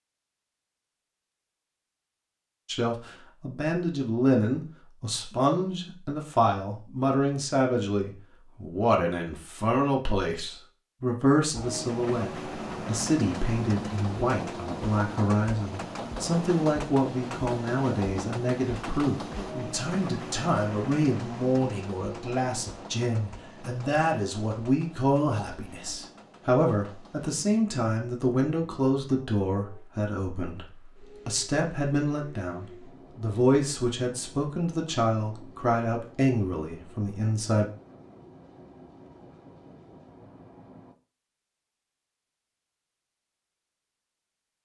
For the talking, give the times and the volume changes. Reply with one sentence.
The talking can be heard from 2.6 to 37.7 s, at a steady volume.